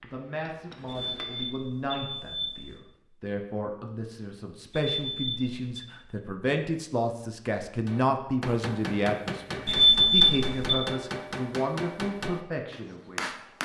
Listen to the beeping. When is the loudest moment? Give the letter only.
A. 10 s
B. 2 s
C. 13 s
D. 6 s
A.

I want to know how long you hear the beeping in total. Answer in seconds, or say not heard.
4 s.